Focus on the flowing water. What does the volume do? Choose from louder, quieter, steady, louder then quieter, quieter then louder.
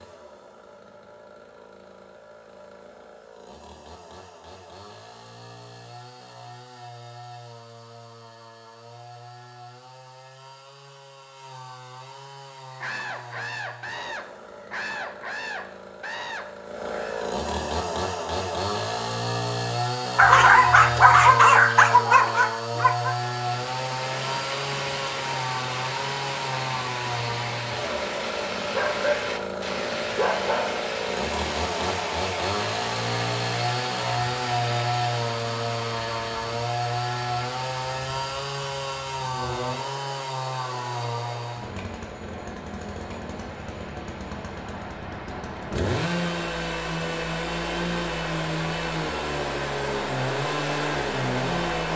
quieter then louder.